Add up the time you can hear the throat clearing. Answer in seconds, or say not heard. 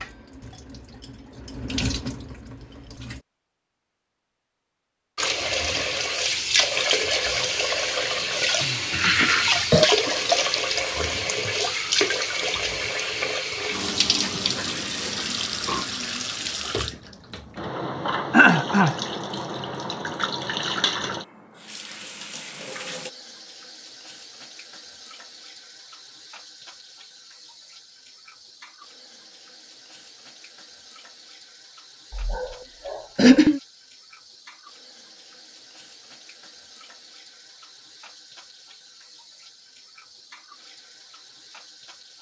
3 s.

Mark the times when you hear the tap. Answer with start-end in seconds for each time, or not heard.
0.0-3.2, 5.2-42.1.